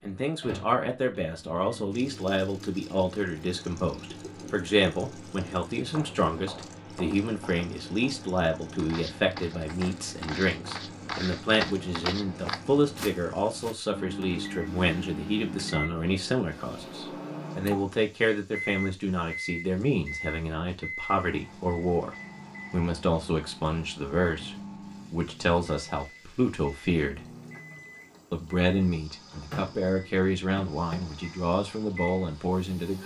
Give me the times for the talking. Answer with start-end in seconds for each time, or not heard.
0.0-27.2, 28.3-33.0.